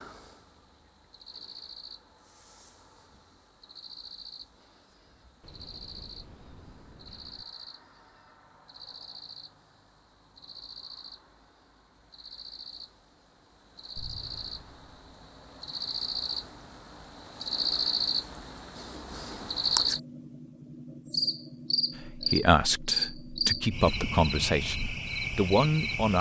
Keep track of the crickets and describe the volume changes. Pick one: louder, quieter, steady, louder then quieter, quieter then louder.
louder.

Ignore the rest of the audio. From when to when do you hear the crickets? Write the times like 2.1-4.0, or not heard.
0.0-26.1.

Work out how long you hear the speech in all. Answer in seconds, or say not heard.
4 s.